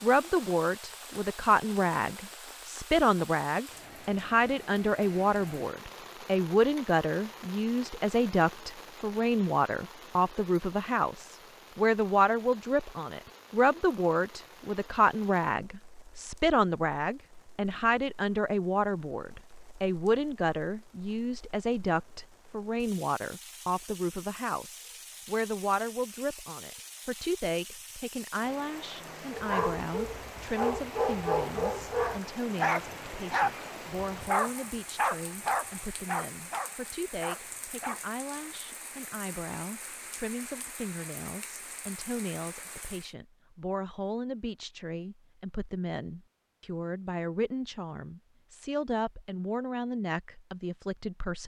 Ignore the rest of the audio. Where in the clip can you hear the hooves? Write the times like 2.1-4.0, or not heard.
not heard.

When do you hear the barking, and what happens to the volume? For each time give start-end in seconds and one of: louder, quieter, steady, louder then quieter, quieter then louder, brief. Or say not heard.
29.3-38.8 quieter.